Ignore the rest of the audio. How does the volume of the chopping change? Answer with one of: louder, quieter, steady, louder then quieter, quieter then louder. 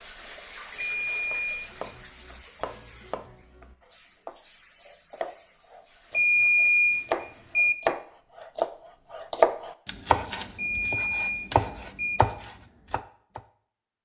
louder then quieter.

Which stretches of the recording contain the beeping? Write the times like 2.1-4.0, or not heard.
0.8-1.9, 6.1-7.8, 10.6-12.2.